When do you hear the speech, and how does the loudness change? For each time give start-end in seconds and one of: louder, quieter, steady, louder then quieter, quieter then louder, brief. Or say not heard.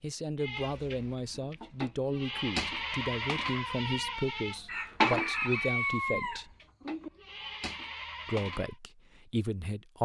0.0-6.5 steady
8.2-10.0 brief.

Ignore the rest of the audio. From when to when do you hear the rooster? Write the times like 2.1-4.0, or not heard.
4.7-7.1.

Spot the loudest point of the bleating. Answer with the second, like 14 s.
5 s.